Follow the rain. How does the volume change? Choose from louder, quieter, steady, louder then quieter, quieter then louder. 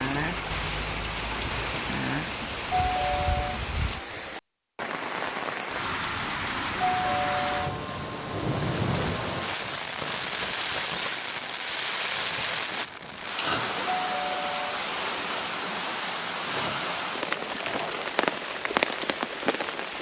steady.